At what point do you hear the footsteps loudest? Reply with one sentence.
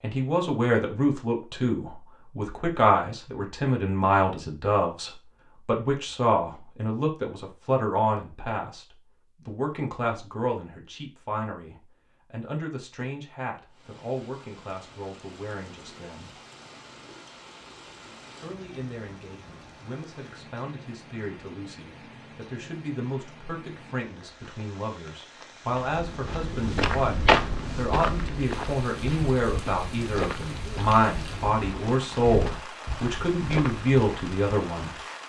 The volume of the footsteps peaks at 27 seconds.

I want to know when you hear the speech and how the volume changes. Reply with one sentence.
You can hear the speech from 0.0 to 16.4 s, getting quieter; and from 18.4 to 35.0 s, getting louder.